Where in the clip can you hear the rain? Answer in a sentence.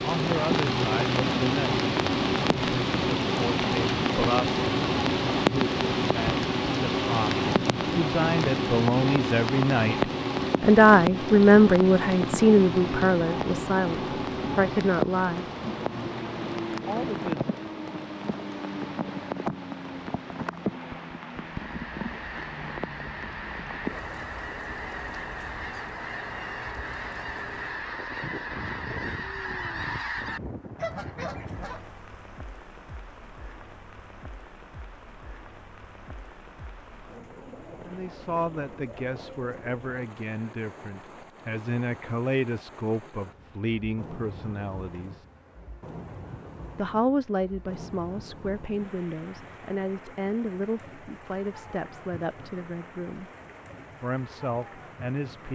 The rain can be heard from 0.0 to 55.5 s.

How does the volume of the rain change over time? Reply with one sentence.
The loudness of the rain goes down.